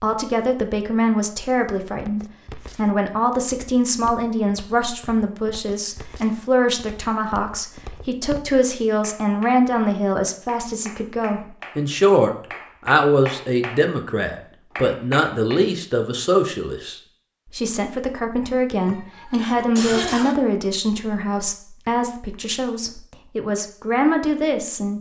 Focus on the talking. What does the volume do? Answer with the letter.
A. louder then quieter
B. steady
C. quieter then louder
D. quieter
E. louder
B.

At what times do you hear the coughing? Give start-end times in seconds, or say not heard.
18.9-20.4.